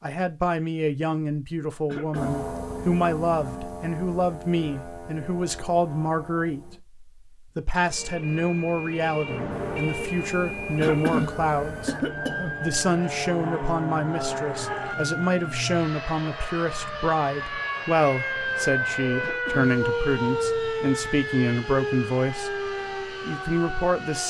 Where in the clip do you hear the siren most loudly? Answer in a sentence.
The volume of the siren peaks at 20 seconds.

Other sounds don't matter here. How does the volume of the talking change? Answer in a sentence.
The loudness of the talking stays about the same.